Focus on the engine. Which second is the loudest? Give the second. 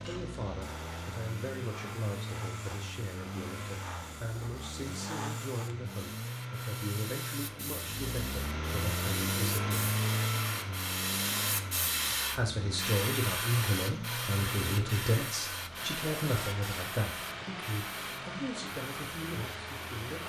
10 s.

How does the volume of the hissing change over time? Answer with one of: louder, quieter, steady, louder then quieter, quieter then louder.
louder then quieter.